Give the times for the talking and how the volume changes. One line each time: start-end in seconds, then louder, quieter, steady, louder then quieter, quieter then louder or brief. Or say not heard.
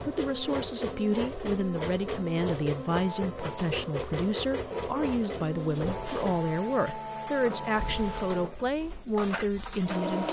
0.1-10.2 steady.